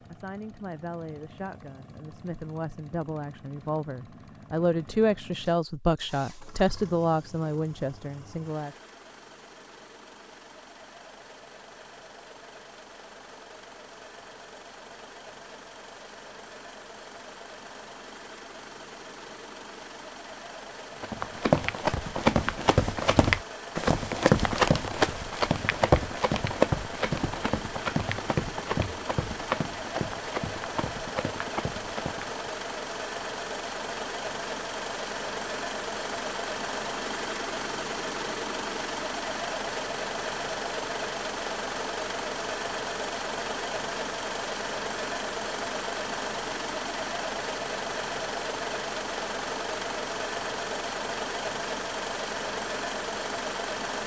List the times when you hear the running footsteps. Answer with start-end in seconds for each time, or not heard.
21.0-32.5.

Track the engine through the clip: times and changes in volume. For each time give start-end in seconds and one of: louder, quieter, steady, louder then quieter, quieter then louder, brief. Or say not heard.
0.0-54.0 louder.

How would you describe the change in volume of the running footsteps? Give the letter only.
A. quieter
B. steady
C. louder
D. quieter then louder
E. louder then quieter
A.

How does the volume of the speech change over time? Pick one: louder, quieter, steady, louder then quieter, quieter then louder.
louder.